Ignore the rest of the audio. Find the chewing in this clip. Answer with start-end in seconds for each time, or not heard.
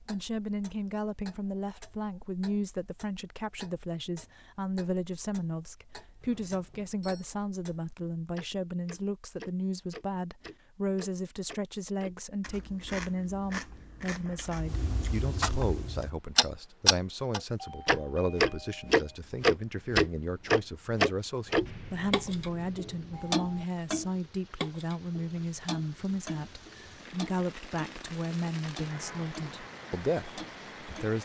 12.4-15.2.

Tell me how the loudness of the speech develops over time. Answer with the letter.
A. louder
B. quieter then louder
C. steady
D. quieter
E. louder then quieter
C.